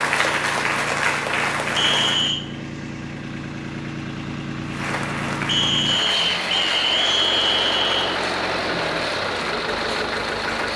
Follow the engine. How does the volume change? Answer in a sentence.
The loudness of the engine goes up.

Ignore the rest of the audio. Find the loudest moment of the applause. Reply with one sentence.
The volume of the applause peaks at 1 second.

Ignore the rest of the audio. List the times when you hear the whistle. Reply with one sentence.
You can hear the whistle from 1.8 to 2.5 s and from 5.5 to 8.2 s.